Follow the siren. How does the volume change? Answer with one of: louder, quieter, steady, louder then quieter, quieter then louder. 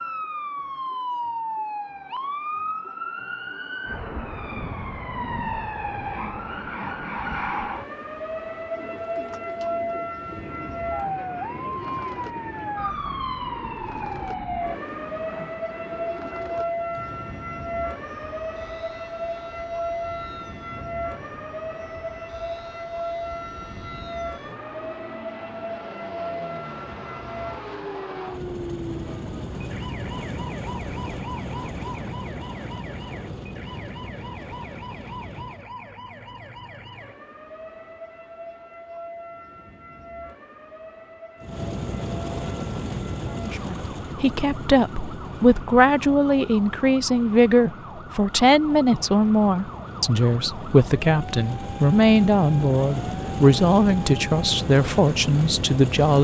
quieter.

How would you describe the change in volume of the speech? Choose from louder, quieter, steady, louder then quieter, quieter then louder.
steady.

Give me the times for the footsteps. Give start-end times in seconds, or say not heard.
not heard.